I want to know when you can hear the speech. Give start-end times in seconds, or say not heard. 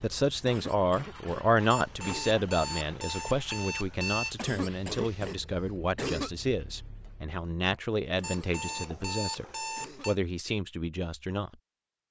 0.0-9.4, 10.1-11.5.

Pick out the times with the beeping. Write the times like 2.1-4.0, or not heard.
1.7-4.3, 8.2-10.2.